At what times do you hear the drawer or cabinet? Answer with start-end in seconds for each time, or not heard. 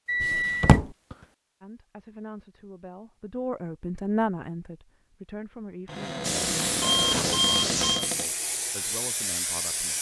0.2-0.9, 5.8-8.3.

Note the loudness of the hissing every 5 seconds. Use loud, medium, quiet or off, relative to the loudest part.
off, loud.